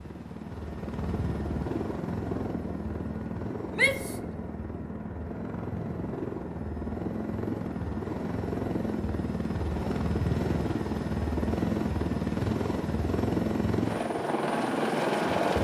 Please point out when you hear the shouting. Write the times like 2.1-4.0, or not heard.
3.8-4.2.